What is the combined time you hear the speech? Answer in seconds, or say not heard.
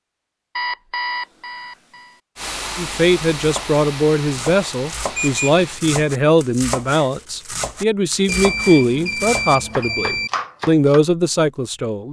9 s.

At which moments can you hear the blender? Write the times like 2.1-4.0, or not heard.
not heard.